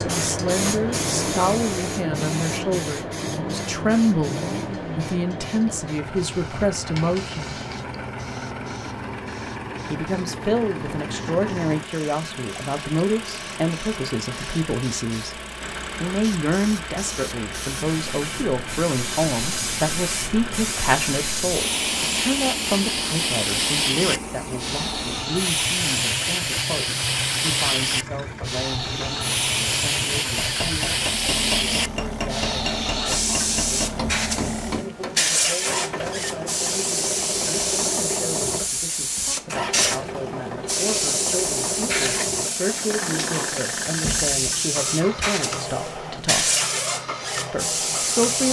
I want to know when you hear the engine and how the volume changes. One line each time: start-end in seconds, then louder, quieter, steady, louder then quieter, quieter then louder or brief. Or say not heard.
0.0-48.4 steady.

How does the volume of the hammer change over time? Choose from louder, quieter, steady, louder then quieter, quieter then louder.
steady.